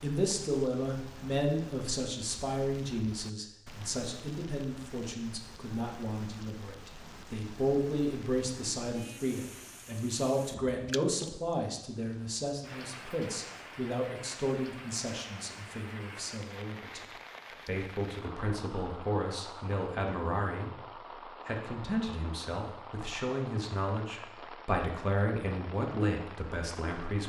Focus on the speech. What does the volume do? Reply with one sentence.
The volume of the speech stays about the same.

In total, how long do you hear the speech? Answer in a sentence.
You can hear the speech for 26 seconds altogether.